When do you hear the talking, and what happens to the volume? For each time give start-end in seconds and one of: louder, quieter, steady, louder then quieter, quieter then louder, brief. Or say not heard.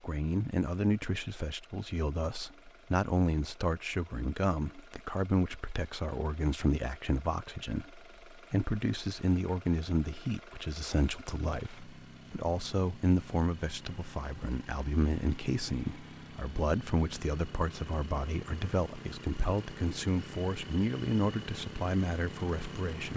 0.0-23.1 steady.